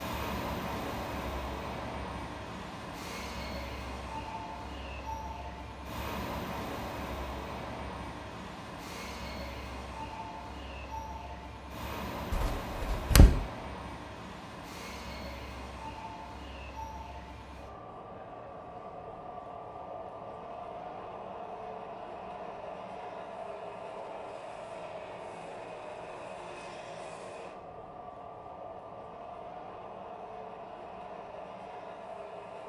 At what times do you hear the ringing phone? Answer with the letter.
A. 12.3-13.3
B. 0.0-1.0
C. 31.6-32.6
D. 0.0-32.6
A.